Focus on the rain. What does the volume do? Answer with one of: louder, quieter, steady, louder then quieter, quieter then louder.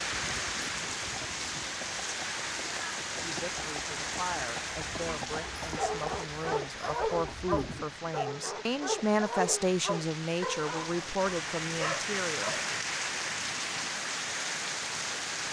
quieter then louder.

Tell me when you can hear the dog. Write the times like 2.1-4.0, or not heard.
5.8-12.8.